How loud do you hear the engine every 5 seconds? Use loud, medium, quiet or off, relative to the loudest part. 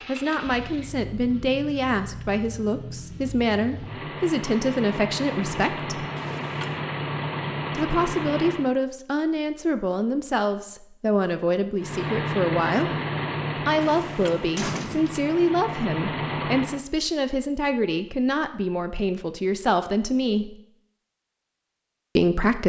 medium, loud, loud, loud, off.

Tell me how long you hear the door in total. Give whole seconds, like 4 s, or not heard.
2 s.